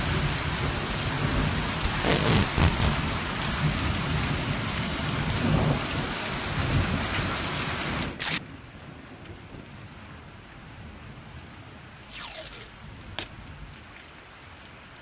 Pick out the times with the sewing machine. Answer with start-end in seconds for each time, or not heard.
not heard.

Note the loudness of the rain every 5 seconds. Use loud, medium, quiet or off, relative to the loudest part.
loud, loud, quiet.